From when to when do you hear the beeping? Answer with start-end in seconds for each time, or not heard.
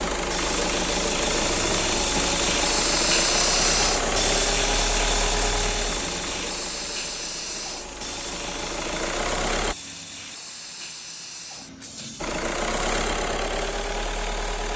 not heard.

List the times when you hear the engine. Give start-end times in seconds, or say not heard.
0.0-9.8, 12.2-14.7.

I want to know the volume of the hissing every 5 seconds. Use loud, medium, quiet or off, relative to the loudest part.
loud, medium, quiet.